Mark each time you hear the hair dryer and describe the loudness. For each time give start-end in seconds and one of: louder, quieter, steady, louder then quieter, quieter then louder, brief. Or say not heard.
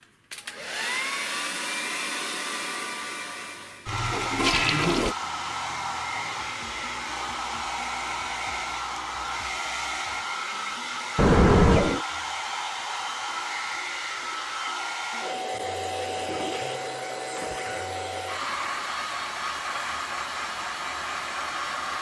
0.0-21.9 steady.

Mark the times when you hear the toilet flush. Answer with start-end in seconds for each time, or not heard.
3.9-5.2, 11.2-12.0, 16.1-17.9.